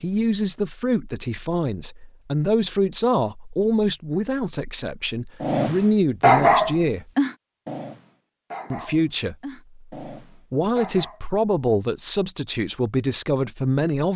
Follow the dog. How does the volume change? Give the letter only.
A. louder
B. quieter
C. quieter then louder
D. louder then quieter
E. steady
B.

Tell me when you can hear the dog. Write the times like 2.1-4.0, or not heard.
5.4-11.2.